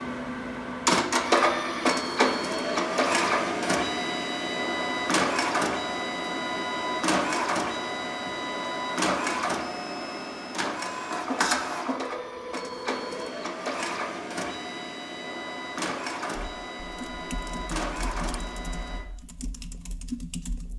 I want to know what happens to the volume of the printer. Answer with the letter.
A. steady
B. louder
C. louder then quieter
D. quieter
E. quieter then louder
D.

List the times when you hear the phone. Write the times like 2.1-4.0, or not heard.
11.8-13.3.